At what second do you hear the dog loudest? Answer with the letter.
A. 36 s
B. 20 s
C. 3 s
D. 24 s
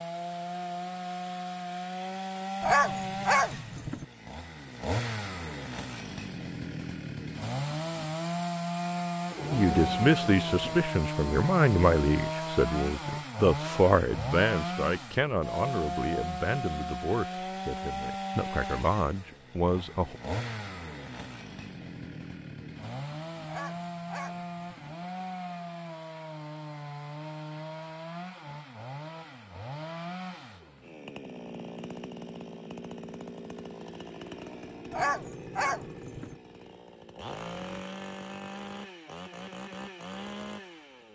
C.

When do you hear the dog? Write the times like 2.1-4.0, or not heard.
2.6-4.0, 23.4-24.9, 34.9-36.4.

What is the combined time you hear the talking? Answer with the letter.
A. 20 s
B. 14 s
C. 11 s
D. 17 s
C.